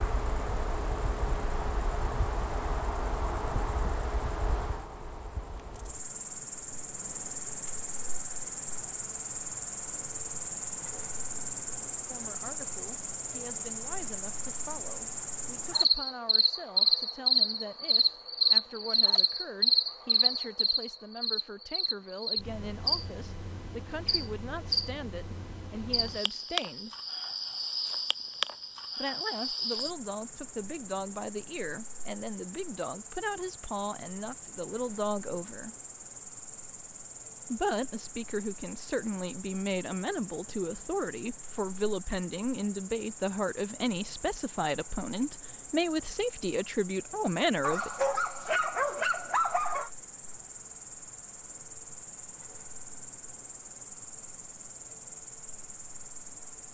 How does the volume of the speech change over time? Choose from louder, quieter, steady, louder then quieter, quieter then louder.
louder.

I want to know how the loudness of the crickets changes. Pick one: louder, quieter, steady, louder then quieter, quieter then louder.
louder then quieter.